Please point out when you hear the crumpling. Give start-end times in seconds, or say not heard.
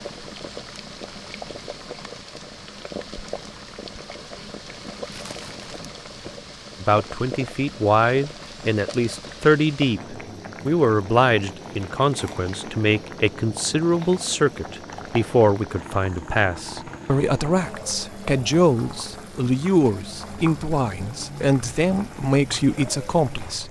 5.1-5.9.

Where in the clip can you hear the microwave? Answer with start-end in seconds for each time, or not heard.
not heard.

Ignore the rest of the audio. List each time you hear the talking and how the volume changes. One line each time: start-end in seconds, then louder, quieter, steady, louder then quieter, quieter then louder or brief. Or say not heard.
6.8-23.6 steady.